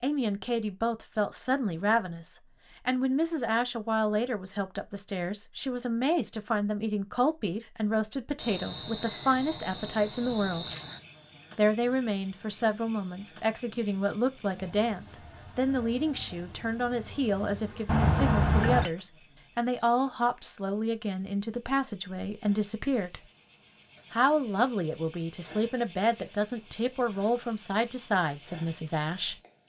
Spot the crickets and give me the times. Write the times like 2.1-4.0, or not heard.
8.3-29.6.